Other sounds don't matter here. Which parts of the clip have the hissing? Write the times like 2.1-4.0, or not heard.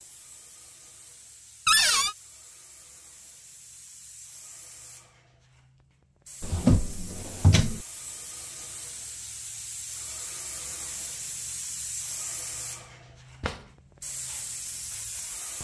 0.0-15.5.